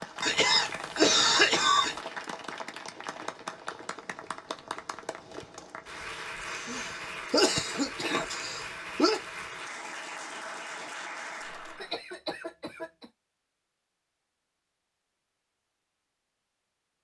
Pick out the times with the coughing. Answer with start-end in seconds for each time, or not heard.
0.2-1.9, 6.5-9.2, 11.8-13.1.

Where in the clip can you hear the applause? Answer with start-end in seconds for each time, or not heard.
0.0-12.0.